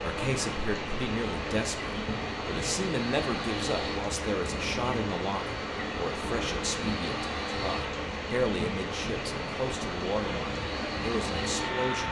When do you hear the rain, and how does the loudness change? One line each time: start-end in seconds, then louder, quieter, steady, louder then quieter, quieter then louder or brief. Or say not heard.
0.0-12.0 steady.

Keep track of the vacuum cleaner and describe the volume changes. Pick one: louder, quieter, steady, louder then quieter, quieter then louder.
steady.